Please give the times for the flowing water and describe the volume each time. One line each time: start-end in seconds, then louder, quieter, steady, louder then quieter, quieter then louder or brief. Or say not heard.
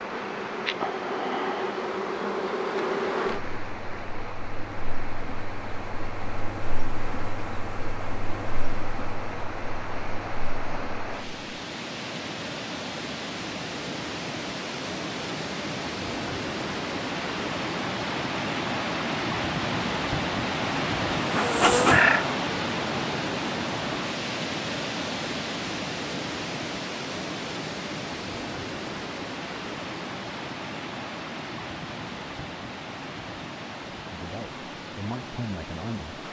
0.0-36.2 louder then quieter.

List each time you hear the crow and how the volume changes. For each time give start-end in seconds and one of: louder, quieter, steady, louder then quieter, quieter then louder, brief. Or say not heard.
not heard.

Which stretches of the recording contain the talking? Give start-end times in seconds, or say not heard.
34.1-36.2.